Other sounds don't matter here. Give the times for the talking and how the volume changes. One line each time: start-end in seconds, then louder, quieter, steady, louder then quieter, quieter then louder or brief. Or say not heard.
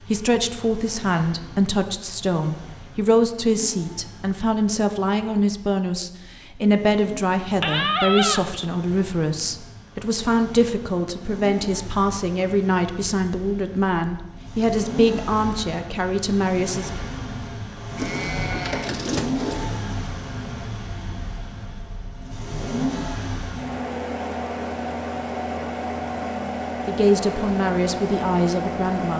0.1-16.9 steady
26.9-29.1 brief.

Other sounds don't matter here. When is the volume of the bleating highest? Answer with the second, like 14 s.
8 s.